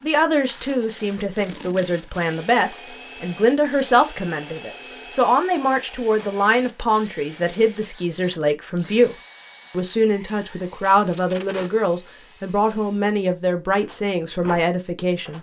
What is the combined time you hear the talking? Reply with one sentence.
The talking can be heard for 15 seconds in total.